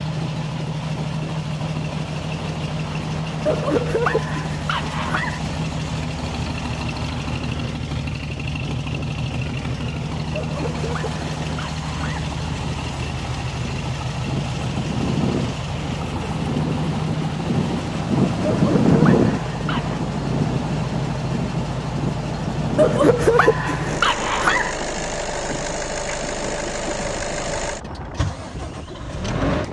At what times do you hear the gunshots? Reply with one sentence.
You can't hear the gunshots here.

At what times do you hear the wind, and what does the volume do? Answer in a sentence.
You can hear the wind from 0.0 to 29.6 s, getting louder then quieter.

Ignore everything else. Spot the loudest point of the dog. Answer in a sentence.
The volume of the dog peaks at 23 seconds.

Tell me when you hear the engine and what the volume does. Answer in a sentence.
You can hear the engine from 0.0 to 29.6 s, at a steady volume.